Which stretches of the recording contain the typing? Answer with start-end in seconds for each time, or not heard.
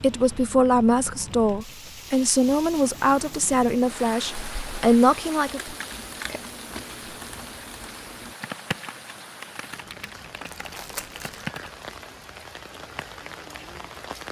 3.8-11.7.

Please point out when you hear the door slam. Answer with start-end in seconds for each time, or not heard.
not heard.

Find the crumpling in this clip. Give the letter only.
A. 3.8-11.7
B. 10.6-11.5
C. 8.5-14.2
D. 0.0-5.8
B.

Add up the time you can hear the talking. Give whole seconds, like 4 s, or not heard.
6 s.